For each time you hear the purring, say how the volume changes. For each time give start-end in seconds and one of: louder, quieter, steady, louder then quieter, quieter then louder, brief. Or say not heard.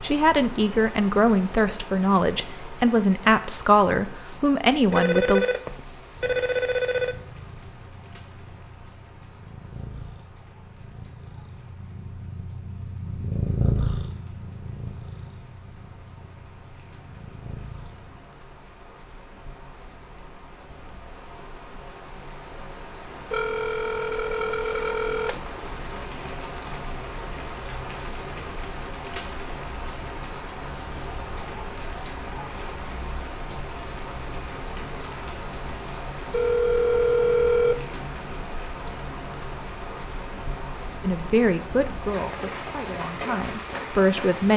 6.2-18.2 louder then quieter.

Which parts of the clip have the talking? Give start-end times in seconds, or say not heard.
0.0-5.5, 41.0-44.5.